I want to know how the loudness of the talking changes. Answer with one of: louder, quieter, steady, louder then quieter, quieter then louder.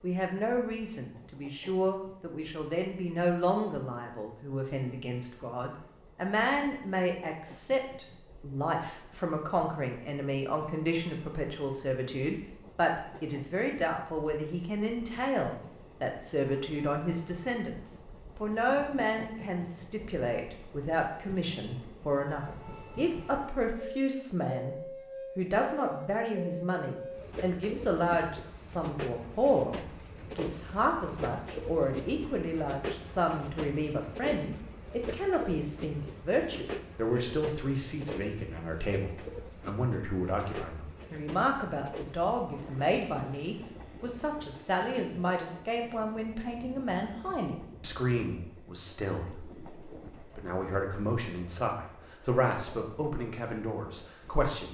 steady.